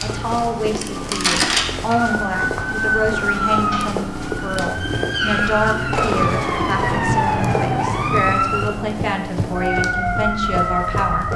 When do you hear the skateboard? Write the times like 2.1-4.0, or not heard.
not heard.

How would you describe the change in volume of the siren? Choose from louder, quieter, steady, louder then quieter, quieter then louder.
steady.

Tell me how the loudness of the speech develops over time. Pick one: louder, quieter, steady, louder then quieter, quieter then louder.
steady.